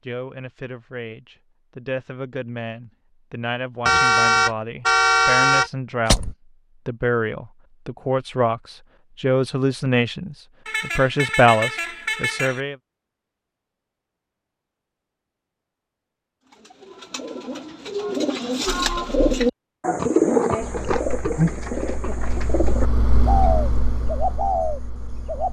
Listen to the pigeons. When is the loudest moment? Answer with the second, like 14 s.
20 s.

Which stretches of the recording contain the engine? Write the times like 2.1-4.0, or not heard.
20.6-25.4.